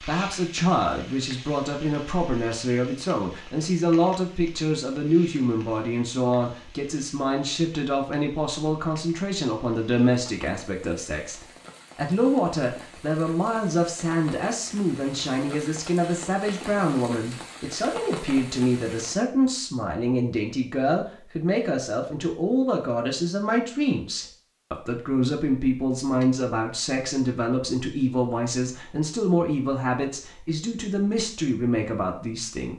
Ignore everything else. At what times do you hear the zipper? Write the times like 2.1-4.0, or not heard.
not heard.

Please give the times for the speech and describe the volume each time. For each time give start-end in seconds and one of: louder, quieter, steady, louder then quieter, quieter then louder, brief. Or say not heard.
0.0-32.7 steady.